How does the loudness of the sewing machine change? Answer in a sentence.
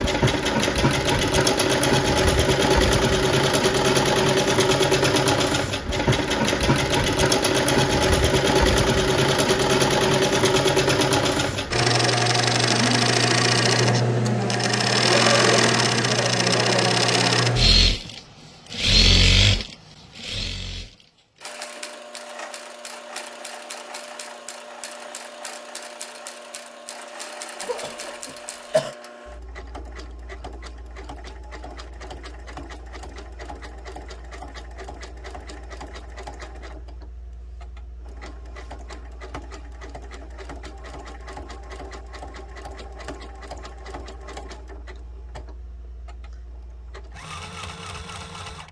The loudness of the sewing machine goes down.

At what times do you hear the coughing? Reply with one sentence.
You can hear the coughing from 27.6 to 28.9 s.